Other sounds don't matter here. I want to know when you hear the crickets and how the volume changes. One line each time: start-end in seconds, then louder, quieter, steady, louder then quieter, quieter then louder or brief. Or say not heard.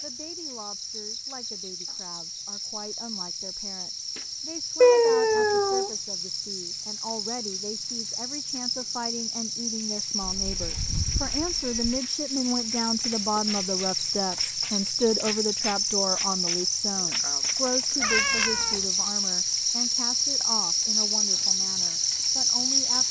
0.0-23.0 louder.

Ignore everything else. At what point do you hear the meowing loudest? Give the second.
5 s.